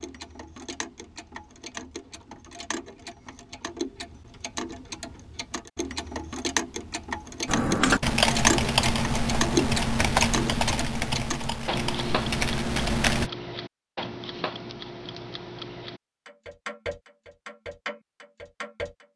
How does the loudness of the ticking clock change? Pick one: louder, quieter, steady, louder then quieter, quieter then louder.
louder then quieter.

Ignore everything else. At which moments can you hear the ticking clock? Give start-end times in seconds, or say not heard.
0.0-19.1.